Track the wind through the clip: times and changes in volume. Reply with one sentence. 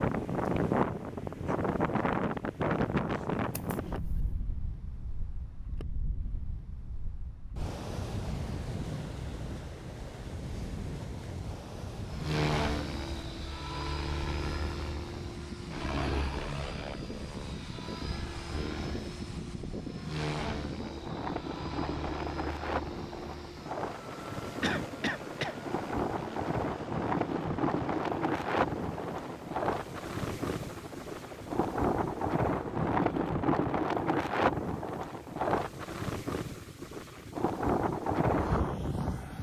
The wind can be heard from 0.0 to 39.3 s, getting quieter then louder.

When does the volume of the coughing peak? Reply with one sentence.
The loudest moment of the coughing is at 25 seconds.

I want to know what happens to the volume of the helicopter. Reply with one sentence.
The loudness of the helicopter goes down.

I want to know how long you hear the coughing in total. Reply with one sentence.
You can hear the coughing for 2 seconds altogether.